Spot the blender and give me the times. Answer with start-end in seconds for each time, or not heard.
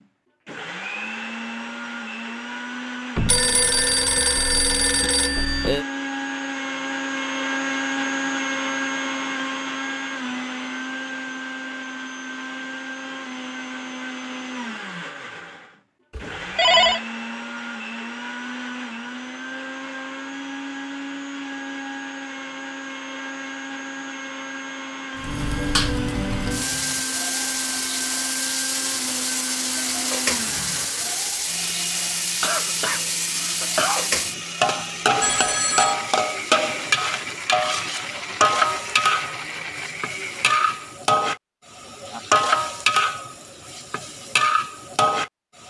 0.0-41.0.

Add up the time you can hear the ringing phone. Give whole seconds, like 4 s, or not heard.
4 s.